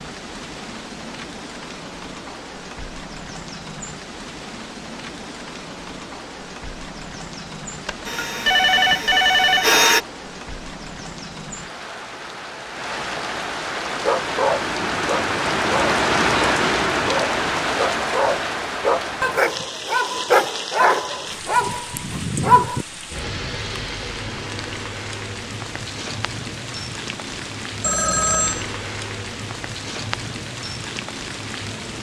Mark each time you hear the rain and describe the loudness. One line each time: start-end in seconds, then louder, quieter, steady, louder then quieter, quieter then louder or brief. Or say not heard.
0.0-31.9 louder then quieter.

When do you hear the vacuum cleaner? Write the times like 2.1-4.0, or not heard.
8.1-10.0.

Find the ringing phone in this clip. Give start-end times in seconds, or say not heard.
7.8-9.7, 27.8-28.6.